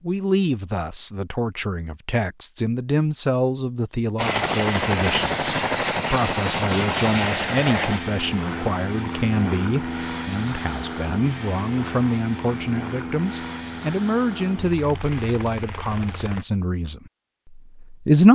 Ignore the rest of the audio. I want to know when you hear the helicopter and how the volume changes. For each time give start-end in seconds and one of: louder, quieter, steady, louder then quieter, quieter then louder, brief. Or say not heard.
4.2-16.4 quieter.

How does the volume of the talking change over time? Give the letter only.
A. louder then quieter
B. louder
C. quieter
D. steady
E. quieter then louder
D.